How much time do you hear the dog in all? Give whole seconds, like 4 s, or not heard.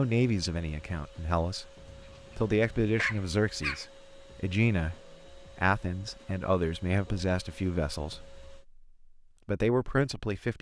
2 s.